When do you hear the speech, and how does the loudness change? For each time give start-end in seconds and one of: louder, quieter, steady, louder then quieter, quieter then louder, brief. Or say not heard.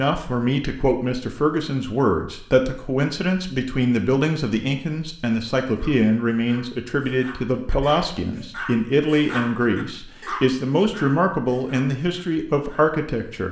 0.0-13.4 steady.